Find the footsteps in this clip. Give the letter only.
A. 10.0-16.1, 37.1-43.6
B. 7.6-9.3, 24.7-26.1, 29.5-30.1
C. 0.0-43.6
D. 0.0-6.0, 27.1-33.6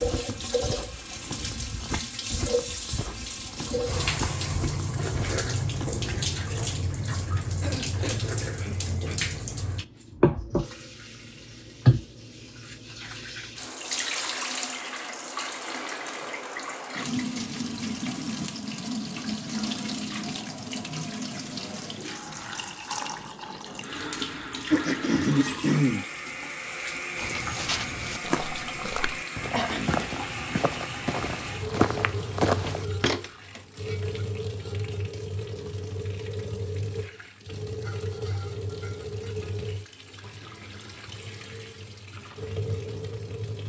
D.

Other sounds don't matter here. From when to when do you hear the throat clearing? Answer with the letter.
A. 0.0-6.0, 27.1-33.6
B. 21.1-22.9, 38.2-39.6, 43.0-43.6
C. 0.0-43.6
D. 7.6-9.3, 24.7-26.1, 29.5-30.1
D.